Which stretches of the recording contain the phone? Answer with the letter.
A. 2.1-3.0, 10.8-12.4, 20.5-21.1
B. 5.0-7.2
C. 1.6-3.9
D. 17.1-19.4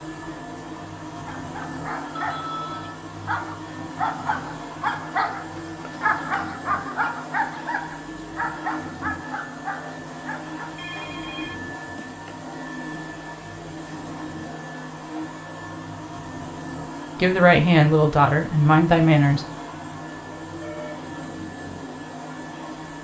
A.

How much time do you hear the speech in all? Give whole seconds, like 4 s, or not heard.
2 s.